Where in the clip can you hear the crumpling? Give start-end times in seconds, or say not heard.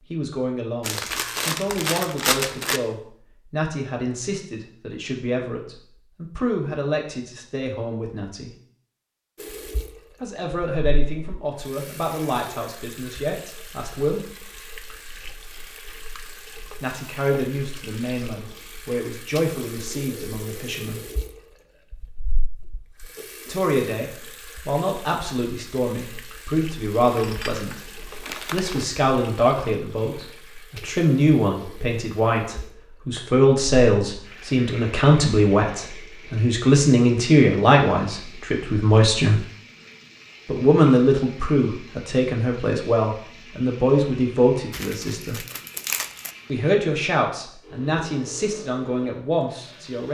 0.8-2.8, 27.1-28.9, 44.7-46.4.